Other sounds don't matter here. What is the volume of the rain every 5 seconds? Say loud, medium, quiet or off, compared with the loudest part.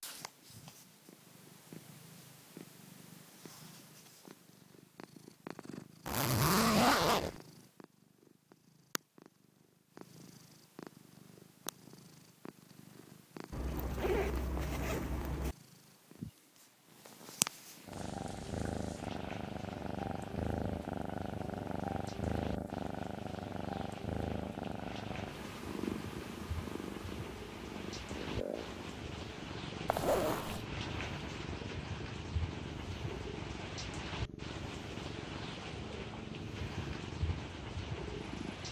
off, off, off, medium, medium, loud, loud, loud.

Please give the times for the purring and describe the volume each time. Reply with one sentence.
You can hear the purring from 0.0 to 38.6 s, getting louder then quieter.